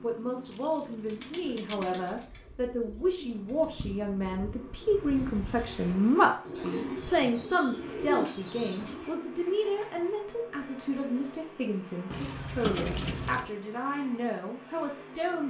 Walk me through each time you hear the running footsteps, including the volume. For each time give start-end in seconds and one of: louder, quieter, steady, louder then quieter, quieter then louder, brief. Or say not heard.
not heard.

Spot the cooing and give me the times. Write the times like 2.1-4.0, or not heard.
0.9-9.2.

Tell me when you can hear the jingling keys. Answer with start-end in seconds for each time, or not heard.
0.5-1.9, 12.1-13.5.